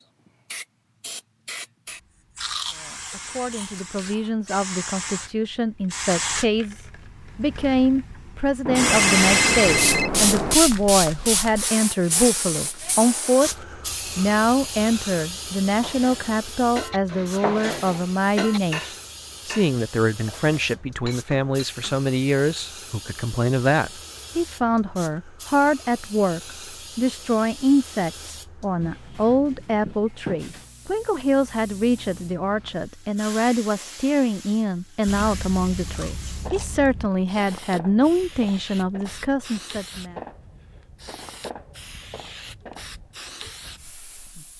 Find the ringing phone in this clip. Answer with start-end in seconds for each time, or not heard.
8.7-10.6.